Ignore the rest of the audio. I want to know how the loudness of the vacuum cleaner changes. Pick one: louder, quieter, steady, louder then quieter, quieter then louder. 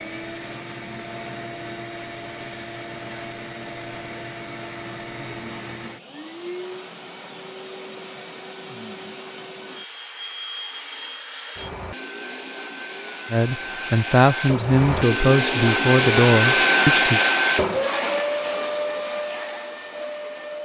louder.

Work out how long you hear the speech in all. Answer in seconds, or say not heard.
4 s.